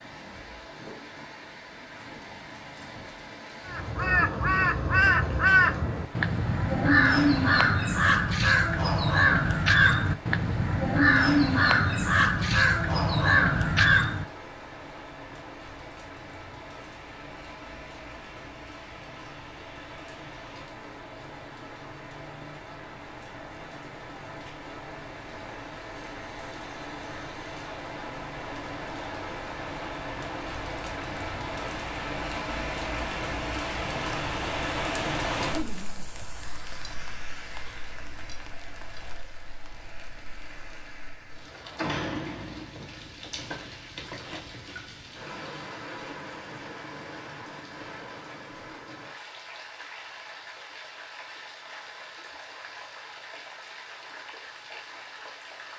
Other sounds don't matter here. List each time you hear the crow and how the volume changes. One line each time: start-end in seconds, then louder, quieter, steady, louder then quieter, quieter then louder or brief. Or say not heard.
3.6-14.2 steady.